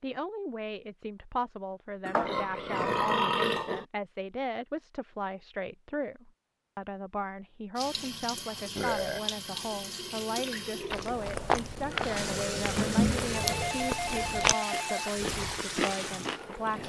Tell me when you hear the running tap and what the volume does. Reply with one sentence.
The running tap can be heard from 7.8 to 16.8 s, at a steady volume.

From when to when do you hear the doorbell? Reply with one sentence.
The doorbell can be heard from 13.3 to 15.2 s.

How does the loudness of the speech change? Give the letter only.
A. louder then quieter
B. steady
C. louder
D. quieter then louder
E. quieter
B.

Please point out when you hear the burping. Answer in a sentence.
You can hear the burping from 2.0 to 3.9 s, from 8.8 to 9.2 s and from 11.9 to 13.8 s.